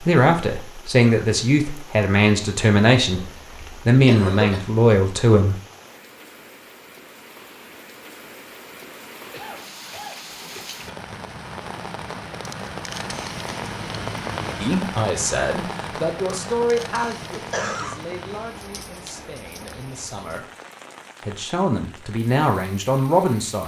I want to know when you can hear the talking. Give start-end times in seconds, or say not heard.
0.0-3.2, 3.9-5.5, 14.6-20.4, 21.2-23.6.